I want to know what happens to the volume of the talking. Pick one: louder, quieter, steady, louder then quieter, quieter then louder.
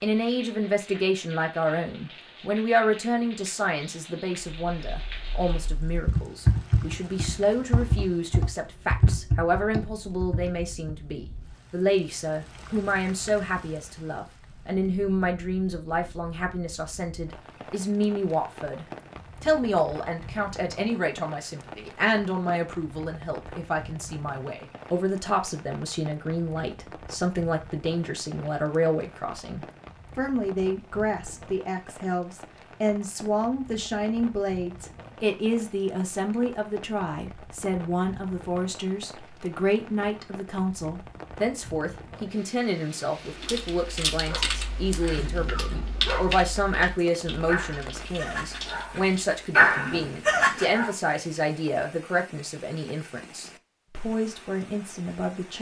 steady.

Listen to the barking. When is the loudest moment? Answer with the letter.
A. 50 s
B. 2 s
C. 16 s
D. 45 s
A.